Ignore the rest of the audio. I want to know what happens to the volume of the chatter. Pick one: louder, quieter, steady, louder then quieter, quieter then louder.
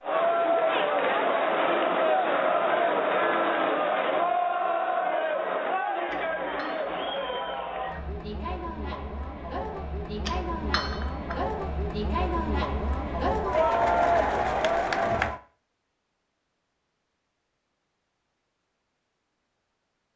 quieter then louder.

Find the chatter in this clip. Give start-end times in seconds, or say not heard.
0.0-15.4.